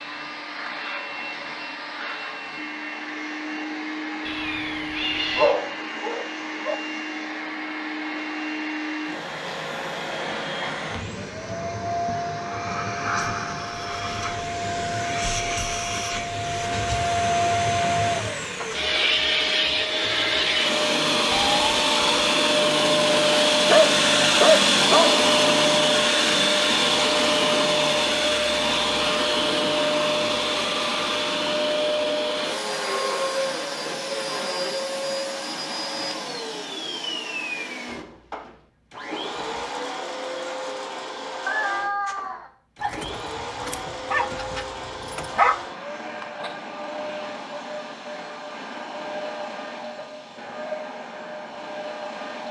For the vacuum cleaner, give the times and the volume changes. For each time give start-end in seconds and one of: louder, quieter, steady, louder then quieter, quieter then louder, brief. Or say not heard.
0.0-52.4 louder then quieter.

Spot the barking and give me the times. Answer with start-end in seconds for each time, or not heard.
5.3-6.8, 23.6-25.2, 42.8-45.5.